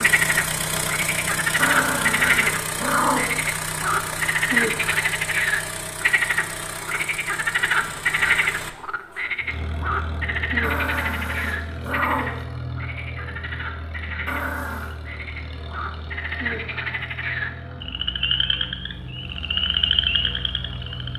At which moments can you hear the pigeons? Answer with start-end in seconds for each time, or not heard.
not heard.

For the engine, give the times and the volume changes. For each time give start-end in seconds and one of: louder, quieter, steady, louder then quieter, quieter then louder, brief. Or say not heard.
0.0-21.1 quieter.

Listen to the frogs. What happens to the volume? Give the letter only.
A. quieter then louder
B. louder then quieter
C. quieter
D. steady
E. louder
A.